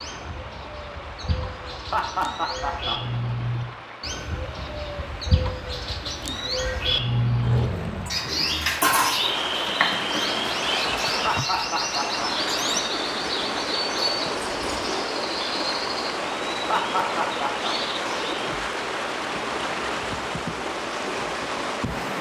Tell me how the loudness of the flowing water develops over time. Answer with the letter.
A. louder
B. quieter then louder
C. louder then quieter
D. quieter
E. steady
A.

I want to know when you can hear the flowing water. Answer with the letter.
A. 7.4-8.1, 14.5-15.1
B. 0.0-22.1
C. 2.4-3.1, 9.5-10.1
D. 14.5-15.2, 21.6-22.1
B.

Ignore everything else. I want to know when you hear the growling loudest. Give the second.
8 s.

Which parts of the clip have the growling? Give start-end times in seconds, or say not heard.
7.4-8.1, 14.5-15.1.